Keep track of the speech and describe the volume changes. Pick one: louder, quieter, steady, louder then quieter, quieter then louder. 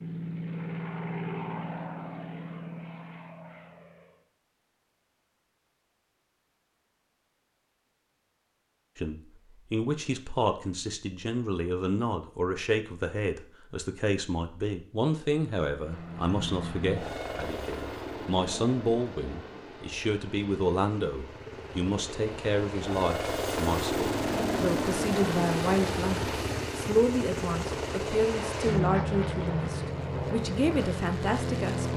steady.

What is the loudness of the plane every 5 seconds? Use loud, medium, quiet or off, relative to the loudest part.
medium, off, off, medium, loud, loud, loud.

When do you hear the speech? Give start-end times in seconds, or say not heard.
8.9-31.9.